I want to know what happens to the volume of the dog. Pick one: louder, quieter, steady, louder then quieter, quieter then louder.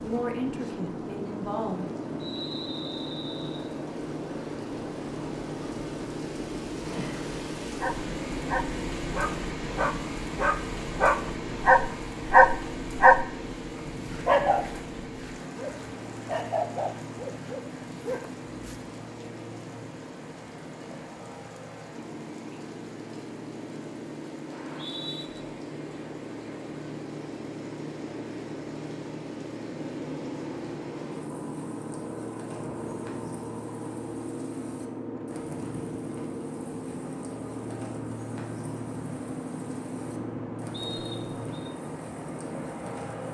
louder then quieter.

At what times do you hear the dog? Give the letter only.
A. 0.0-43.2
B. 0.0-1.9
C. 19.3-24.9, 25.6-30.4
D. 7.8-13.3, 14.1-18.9
D.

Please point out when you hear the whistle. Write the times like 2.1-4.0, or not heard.
2.2-3.7, 24.5-25.2, 40.7-41.7.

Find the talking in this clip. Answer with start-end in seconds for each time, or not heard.
0.0-1.9.